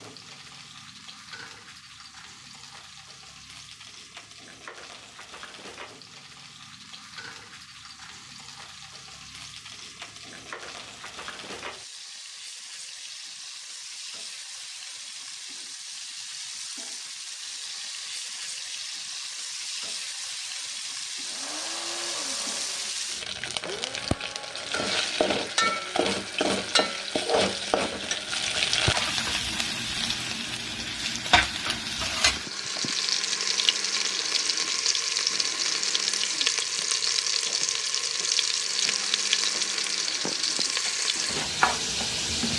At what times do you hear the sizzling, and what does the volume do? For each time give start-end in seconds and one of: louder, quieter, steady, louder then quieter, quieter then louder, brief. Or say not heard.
0.0-42.5 louder.